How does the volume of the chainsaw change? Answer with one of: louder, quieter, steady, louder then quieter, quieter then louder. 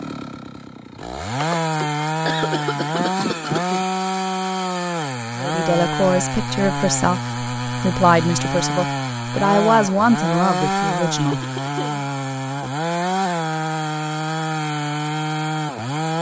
steady.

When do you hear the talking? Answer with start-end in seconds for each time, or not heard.
5.4-11.4.